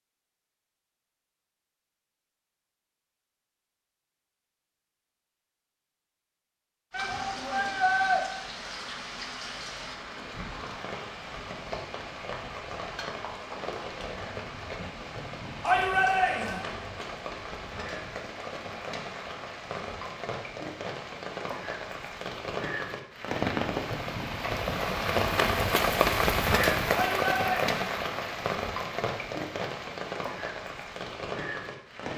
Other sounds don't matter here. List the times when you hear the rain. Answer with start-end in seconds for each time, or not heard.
6.9-32.1.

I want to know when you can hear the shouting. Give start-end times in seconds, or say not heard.
6.9-8.2, 15.6-16.6, 26.9-27.6.